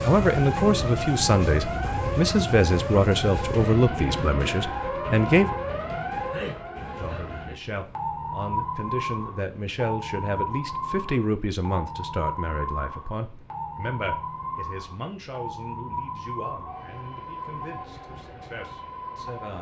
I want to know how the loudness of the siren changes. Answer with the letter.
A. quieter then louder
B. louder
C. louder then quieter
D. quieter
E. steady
D.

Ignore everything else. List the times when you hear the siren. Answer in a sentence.
You can hear the siren from 0.0 to 19.5 s.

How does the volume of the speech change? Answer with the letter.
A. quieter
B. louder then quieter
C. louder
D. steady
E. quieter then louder
A.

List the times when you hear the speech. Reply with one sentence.
You can hear the speech from 0.1 to 5.5 s and from 7.0 to 19.5 s.